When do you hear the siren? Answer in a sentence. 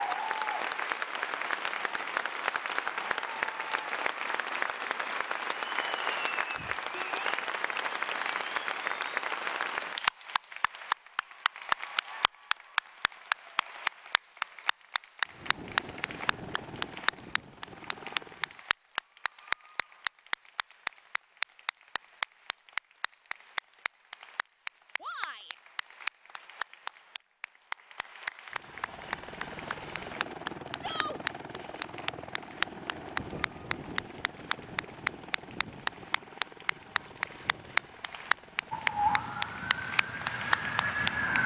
The siren can be heard from 38.7 to 41.4 s.